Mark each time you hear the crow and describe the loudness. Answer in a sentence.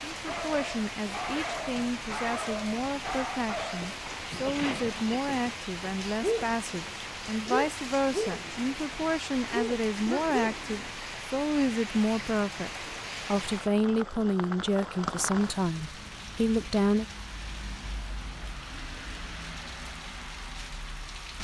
The crow can't be heard in this clip.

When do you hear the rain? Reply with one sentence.
You can hear the rain from 0.0 to 21.4 s.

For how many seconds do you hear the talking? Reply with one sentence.
The talking can be heard for 17 seconds in total.